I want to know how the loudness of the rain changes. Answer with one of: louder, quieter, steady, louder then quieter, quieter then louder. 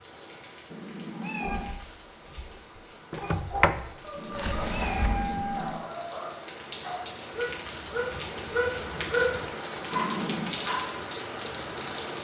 louder.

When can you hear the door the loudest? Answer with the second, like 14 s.
4 s.